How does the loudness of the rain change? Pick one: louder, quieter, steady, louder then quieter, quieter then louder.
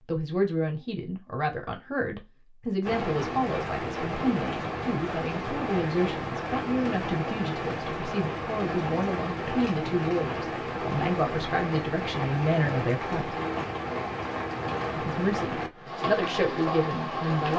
steady.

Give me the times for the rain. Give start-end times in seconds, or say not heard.
2.8-17.5.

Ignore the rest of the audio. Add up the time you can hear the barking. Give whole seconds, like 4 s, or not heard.
not heard.